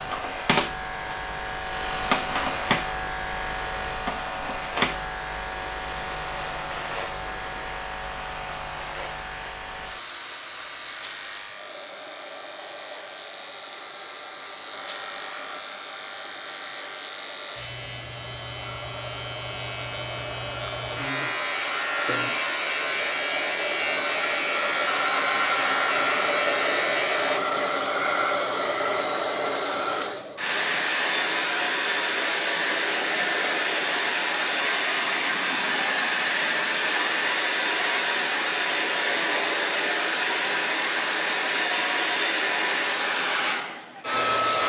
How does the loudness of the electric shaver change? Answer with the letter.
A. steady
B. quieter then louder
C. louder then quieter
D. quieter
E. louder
B.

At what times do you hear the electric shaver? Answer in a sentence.
The electric shaver can be heard from 0.0 to 27.4 s.